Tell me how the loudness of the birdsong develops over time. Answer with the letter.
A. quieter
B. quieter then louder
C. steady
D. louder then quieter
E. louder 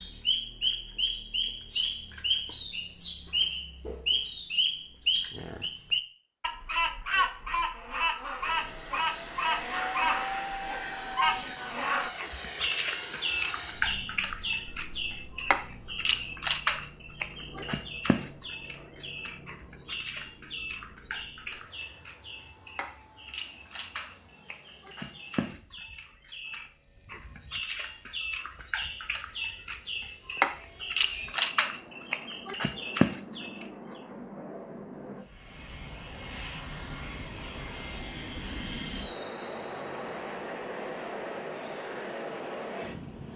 B.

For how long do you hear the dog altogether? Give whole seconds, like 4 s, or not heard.
not heard.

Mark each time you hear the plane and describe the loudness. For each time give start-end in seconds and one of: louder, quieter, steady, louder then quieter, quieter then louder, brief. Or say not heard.
8.4-43.3 quieter then louder.